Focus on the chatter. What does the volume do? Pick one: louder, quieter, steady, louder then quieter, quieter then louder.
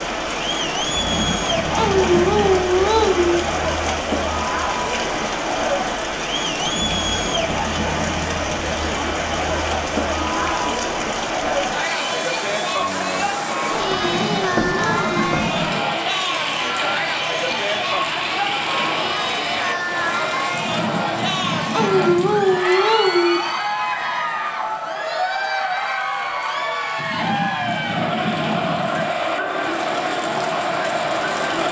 steady.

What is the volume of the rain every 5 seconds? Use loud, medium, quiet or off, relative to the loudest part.
loud, loud, loud, loud, medium, medium, loud.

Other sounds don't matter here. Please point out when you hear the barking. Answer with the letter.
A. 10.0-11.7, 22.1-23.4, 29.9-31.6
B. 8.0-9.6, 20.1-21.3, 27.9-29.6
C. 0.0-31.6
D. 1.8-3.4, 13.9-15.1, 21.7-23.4
D.